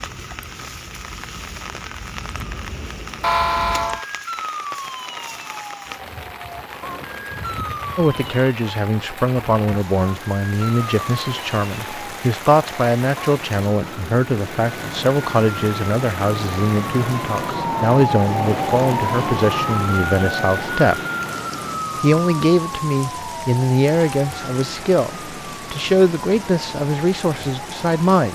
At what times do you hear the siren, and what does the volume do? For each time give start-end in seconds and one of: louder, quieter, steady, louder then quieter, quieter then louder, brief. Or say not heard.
0.0-28.3 louder then quieter.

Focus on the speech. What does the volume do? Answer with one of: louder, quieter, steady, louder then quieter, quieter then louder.
steady.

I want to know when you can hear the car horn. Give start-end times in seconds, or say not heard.
3.2-4.0.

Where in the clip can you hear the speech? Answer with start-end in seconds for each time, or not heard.
8.0-21.0, 22.0-28.3.